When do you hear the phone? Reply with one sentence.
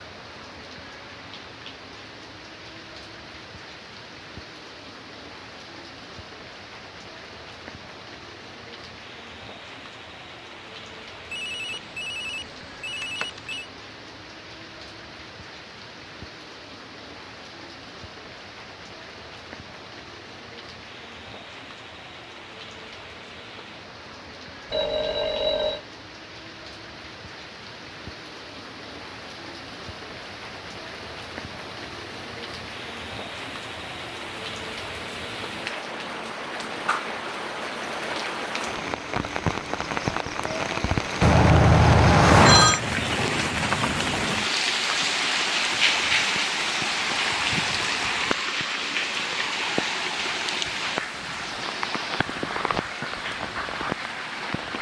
You can hear the phone from 11.3 to 13.7 s, from 24.7 to 25.8 s and from 41.2 to 42.8 s.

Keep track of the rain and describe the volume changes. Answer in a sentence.
The volume of the rain goes up.